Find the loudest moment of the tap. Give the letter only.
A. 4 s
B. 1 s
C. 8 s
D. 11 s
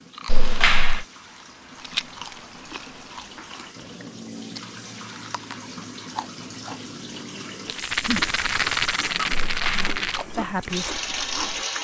D.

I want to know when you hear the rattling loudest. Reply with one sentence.
The volume of the rattling peaks at 9 seconds.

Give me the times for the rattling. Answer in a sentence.
The rattling can be heard from 1.8 to 3.3 s and from 7.7 to 10.2 s.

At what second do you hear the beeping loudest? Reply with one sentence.
The volume of the beeping peaks at 1 second.